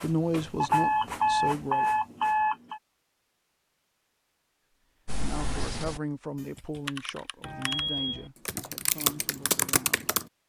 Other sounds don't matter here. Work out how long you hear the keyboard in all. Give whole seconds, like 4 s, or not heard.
5 s.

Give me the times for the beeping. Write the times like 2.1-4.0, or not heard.
0.6-2.8, 7.4-8.3.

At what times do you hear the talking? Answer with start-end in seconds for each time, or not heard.
0.0-1.9, 5.2-10.2.